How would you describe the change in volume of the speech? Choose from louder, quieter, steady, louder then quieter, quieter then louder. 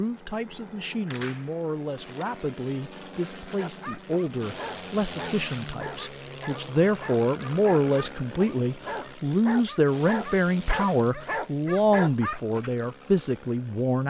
louder.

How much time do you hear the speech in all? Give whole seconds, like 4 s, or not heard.
14 s.